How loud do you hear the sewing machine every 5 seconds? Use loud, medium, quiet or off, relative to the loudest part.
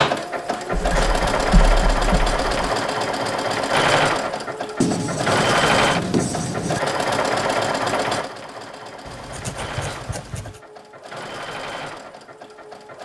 loud, loud, quiet.